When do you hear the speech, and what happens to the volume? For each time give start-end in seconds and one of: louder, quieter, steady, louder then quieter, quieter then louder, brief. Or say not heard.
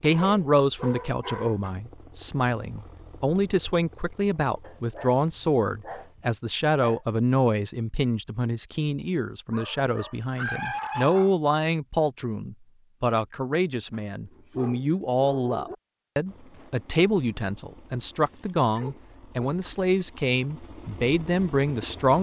0.0-22.1 steady.